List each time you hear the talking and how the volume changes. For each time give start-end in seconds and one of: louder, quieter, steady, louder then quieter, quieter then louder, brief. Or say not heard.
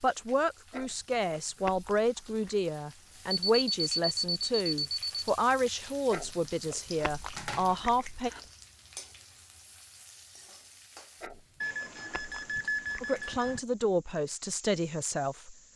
0.0-8.3 steady
13.0-15.6 brief.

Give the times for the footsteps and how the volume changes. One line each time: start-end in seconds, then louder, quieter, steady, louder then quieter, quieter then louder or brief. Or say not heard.
not heard.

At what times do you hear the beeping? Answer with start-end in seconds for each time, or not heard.
3.3-5.3, 11.6-13.6.